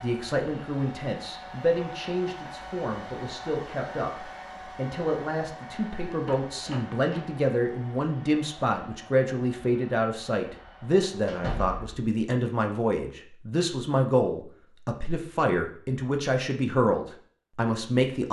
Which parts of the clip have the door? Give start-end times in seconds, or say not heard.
6.2-7.2, 11.2-12.1.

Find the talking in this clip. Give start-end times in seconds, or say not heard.
0.0-18.2.